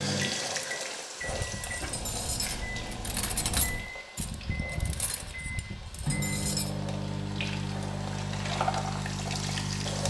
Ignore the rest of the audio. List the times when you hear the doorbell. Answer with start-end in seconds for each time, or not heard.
not heard.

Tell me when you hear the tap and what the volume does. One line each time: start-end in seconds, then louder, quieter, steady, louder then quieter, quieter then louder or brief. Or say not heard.
0.0-10.0 quieter then louder.